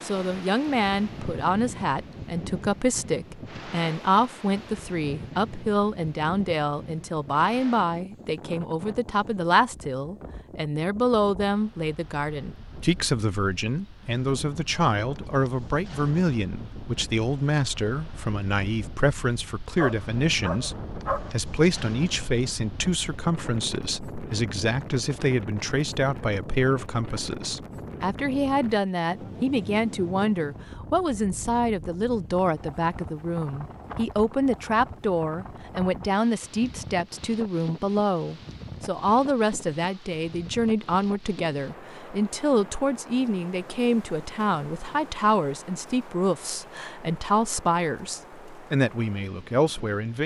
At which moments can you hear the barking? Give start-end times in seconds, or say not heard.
19.8-21.4.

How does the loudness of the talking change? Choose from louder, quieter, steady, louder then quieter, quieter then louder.
steady.